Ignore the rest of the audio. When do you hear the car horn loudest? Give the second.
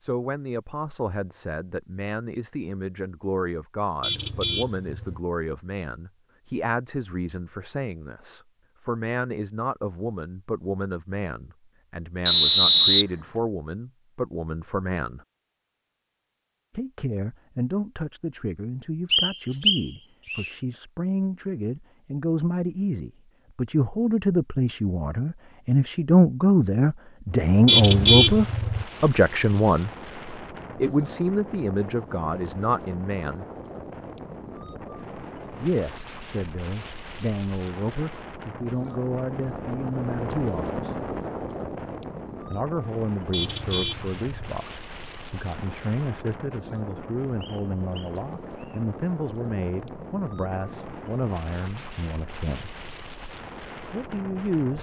28 s.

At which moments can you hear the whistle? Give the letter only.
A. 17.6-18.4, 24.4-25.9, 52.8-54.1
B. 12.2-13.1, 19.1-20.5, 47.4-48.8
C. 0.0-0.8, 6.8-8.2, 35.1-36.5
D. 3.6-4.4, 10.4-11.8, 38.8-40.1
B.